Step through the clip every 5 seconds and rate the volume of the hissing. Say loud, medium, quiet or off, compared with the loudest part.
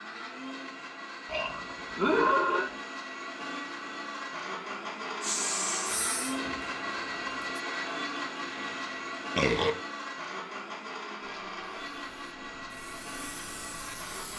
off, loud, medium.